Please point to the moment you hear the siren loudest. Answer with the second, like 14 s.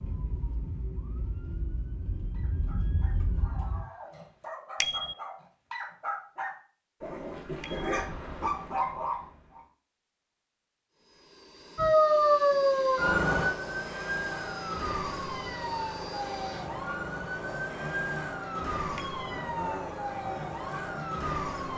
12 s.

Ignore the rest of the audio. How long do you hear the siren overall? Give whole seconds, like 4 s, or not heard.
14 s.